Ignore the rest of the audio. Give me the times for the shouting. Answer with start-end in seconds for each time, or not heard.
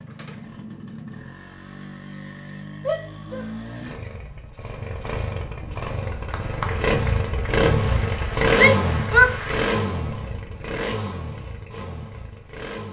2.8-3.5, 8.6-9.3.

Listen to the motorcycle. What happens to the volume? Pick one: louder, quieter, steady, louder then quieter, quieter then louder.
louder then quieter.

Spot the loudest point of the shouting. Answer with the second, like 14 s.
9 s.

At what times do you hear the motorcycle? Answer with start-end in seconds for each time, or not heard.
0.0-12.8.